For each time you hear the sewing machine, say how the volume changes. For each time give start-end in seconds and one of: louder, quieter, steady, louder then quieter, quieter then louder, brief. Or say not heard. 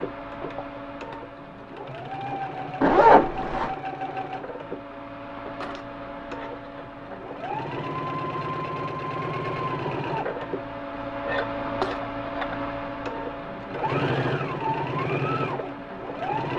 0.0-16.5 louder.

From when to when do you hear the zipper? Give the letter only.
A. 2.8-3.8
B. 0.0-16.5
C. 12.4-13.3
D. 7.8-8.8
A.